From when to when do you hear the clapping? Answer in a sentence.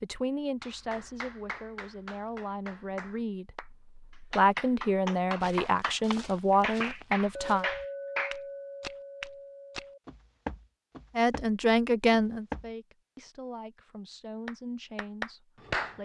The clapping can be heard from 0.6 to 8.3 s and from 14.4 to 16.0 s.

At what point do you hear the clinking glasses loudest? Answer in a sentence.
The loudest moment of the clinking glasses is at 8 seconds.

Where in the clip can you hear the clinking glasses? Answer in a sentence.
The clinking glasses can be heard from 7.3 to 10.0 s.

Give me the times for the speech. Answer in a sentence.
The speech can be heard from 0.0 to 7.7 s and from 11.2 to 16.0 s.